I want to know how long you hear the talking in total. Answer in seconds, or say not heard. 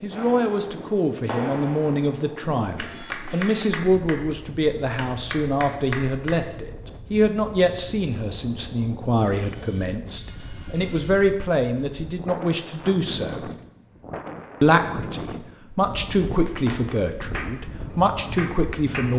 18 s.